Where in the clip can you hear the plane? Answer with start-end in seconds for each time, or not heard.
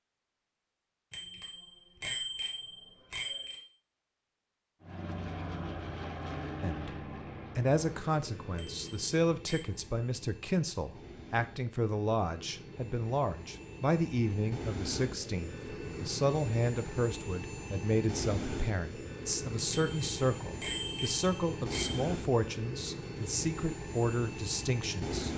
4.8-25.3.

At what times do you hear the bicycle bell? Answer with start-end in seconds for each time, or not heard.
1.1-3.6, 8.6-9.7, 19.7-22.0.